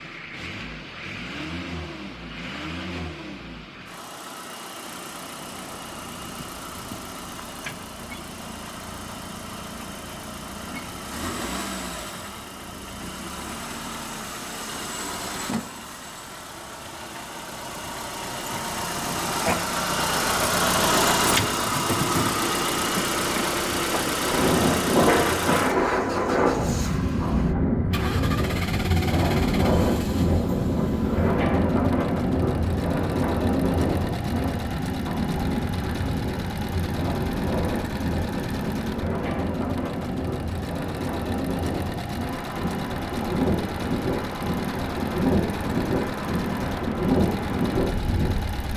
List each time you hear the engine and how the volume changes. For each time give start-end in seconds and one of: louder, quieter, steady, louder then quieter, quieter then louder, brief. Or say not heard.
0.0-48.7 louder then quieter.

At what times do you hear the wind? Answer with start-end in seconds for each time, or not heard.
24.1-48.7.